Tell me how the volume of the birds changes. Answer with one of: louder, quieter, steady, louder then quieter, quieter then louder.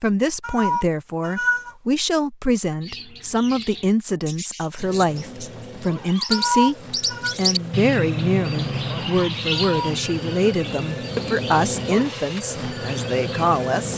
louder then quieter.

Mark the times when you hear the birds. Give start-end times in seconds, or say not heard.
2.8-13.7.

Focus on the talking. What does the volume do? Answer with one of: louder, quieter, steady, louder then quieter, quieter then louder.
steady.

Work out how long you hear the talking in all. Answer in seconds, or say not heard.
14 s.